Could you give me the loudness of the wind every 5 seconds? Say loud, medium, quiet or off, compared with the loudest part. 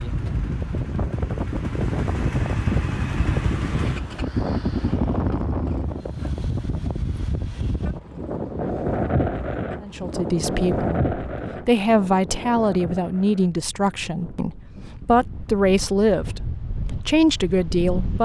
loud, loud, loud, medium.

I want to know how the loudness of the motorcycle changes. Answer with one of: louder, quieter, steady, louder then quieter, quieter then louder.
louder.